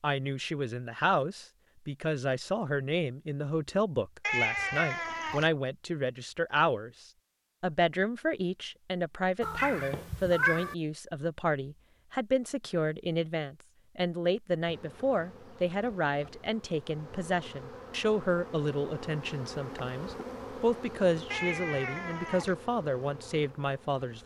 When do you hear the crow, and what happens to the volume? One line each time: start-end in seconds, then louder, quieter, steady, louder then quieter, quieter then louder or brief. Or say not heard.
not heard.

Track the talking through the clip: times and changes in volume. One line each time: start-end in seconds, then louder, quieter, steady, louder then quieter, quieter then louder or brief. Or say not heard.
0.0-24.2 steady.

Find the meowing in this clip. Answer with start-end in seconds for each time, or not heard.
4.2-5.5, 9.4-10.8, 21.3-22.6.